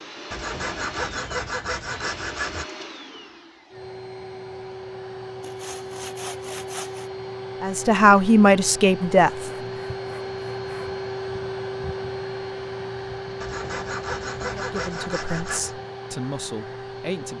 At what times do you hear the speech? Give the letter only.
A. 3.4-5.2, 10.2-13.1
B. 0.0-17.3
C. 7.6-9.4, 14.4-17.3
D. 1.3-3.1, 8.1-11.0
C.